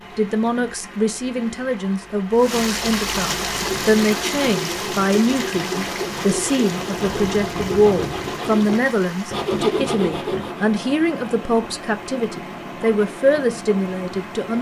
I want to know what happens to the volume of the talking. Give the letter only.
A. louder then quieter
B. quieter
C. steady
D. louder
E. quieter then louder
C.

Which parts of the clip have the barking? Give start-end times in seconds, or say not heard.
not heard.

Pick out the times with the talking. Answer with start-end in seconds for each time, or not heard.
0.1-14.5.